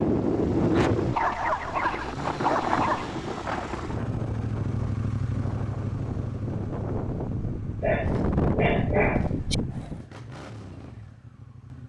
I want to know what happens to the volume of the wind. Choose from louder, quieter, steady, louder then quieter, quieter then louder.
quieter then louder.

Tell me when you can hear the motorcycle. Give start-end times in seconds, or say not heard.
0.0-11.8.